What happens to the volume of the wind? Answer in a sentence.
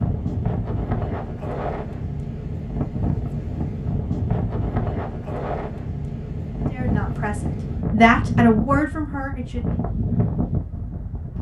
The volume of the wind stays about the same.